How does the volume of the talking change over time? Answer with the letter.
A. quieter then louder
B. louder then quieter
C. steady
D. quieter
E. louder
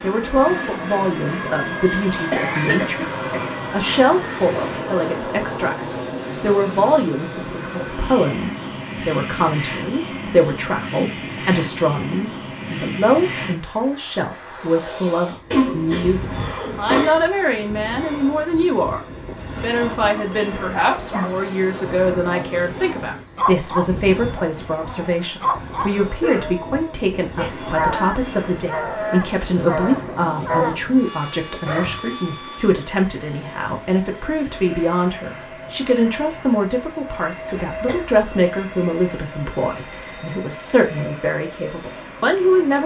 C.